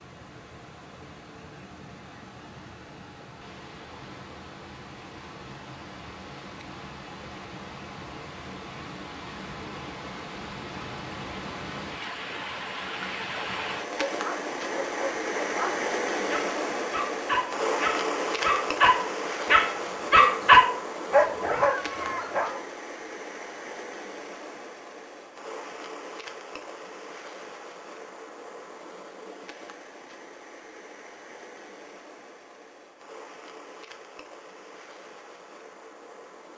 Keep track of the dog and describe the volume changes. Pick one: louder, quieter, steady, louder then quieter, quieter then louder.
louder then quieter.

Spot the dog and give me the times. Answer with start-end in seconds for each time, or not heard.
14.1-22.6.